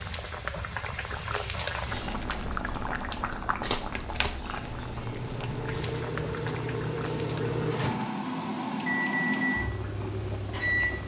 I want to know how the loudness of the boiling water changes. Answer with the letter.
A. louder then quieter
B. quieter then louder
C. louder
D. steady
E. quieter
E.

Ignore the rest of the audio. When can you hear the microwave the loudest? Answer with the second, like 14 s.
9 s.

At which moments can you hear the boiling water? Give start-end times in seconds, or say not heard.
0.0-11.0.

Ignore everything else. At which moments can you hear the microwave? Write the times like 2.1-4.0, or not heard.
4.5-11.0.